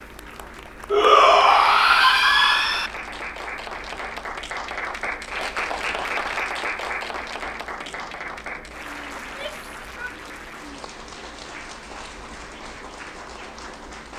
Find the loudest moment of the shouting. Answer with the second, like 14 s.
1 s.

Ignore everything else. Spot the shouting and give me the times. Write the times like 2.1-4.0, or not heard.
0.9-2.9, 9.2-10.2.